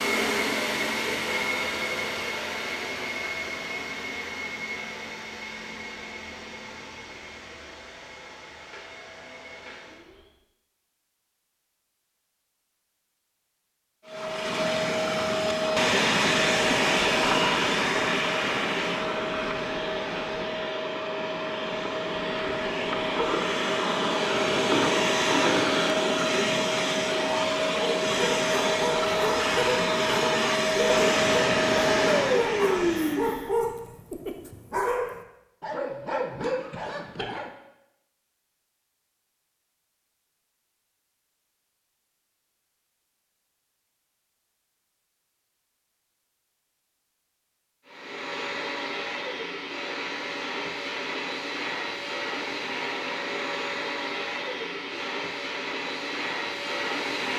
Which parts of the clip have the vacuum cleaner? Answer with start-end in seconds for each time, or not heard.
0.0-10.3, 14.1-33.5, 47.9-57.3.